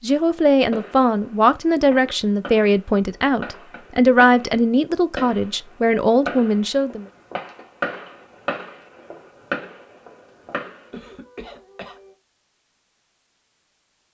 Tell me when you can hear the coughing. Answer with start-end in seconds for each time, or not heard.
10.9-12.2.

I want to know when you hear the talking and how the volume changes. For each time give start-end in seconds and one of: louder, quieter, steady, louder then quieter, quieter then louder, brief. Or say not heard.
0.0-7.0 steady.